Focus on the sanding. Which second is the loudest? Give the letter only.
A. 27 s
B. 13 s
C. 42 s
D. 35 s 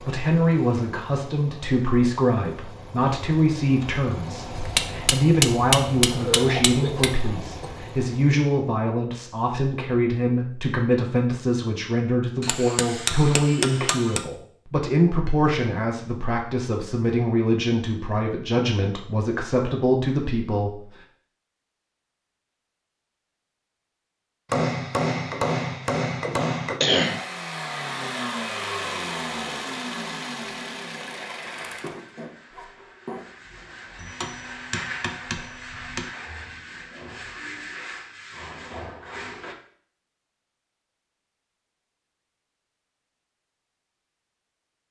D.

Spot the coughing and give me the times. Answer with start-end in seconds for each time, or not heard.
6.1-7.9, 26.8-27.3, 31.8-33.2.